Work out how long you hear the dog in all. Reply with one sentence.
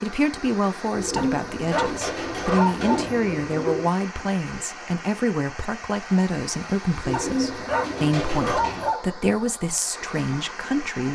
You can hear the dog for 4 seconds altogether.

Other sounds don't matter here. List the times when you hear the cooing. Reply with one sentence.
You can hear the cooing from 0.9 to 3.9 s and from 7.0 to 8.9 s.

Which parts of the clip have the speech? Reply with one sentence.
You can hear the speech from 0.0 to 11.0 s.